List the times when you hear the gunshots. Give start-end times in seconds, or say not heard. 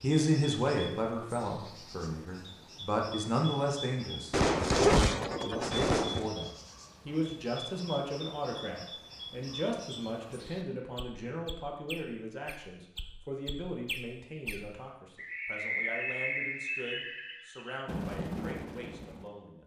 4.3-6.3.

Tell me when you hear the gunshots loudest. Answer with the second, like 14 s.
5 s.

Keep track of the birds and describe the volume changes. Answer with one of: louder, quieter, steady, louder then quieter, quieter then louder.
louder.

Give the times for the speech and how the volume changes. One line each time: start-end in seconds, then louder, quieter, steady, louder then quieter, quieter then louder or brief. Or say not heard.
0.0-19.6 quieter.